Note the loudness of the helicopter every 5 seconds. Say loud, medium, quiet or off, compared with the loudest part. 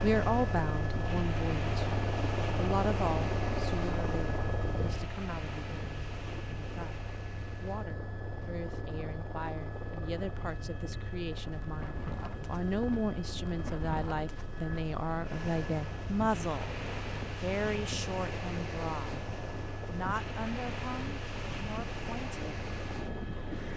loud, medium, medium, medium, medium.